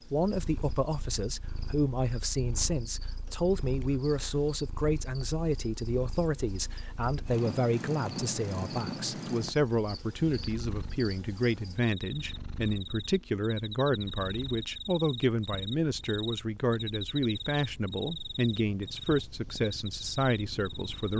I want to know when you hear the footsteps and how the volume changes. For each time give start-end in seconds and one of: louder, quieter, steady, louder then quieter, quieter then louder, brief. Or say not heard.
not heard.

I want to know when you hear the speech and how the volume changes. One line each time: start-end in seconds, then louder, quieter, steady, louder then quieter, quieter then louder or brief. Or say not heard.
0.0-21.1 steady.